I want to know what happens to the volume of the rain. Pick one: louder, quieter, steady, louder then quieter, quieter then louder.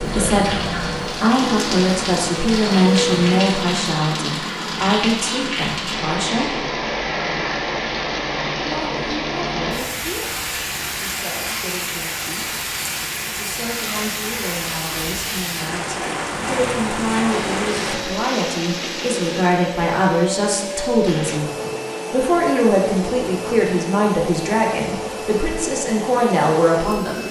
steady.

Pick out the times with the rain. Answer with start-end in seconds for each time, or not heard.
0.0-17.9.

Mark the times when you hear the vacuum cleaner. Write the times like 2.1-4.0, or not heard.
0.0-3.6, 17.3-27.2.